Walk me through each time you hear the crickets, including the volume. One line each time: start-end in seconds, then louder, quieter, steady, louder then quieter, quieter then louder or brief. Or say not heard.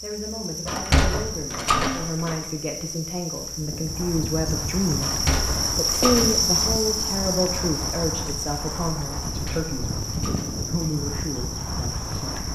0.0-12.5 louder then quieter.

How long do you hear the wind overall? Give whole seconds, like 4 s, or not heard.
9 s.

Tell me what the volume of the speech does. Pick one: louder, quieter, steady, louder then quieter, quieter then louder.
louder then quieter.